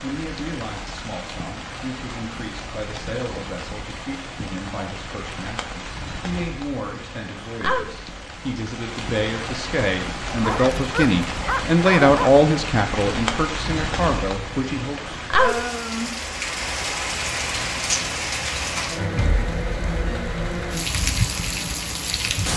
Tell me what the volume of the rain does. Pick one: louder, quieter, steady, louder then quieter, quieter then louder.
louder.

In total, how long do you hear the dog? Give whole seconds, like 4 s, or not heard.
2 s.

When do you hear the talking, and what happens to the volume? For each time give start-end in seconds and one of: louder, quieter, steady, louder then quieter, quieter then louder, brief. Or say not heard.
0.0-15.2 louder.